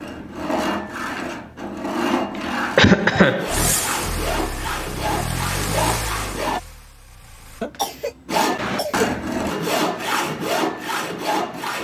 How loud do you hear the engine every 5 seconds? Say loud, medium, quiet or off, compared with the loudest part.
loud, loud, off.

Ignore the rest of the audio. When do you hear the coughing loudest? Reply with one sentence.
The loudest moment of the coughing is at 3 seconds.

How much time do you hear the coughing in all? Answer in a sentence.
You can hear the coughing for 2 seconds altogether.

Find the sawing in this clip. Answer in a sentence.
The sawing can be heard from 0.0 to 6.6 s and from 8.2 to 11.7 s.